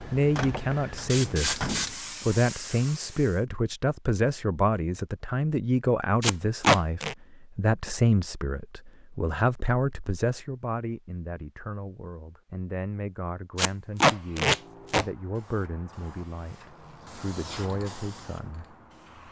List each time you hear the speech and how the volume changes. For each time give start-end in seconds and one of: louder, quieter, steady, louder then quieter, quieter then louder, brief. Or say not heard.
0.0-18.6 quieter.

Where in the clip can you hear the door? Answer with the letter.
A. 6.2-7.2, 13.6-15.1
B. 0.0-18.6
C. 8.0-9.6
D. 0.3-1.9
D.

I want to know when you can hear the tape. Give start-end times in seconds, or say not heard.
6.2-7.2, 13.6-15.1.